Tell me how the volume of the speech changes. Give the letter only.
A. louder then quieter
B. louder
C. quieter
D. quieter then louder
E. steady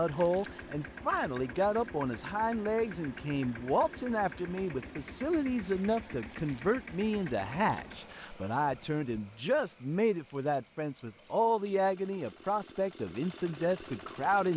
E.